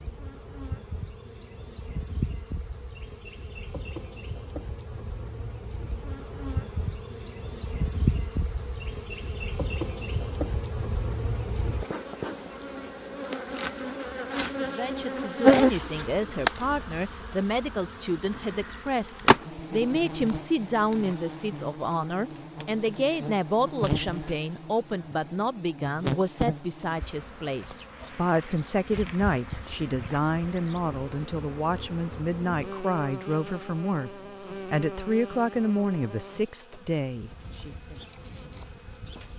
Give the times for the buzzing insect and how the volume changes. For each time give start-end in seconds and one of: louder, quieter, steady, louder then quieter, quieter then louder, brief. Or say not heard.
0.0-39.3 louder then quieter.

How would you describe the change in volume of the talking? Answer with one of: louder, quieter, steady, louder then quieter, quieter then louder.
steady.